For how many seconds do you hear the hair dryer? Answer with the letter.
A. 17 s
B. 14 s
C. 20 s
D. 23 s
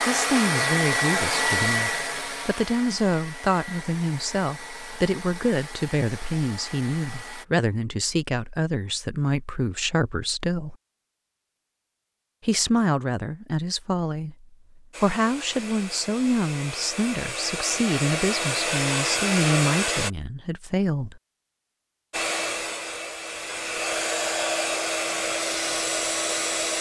A.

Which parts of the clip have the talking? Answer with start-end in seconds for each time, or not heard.
0.1-10.8, 12.4-21.2.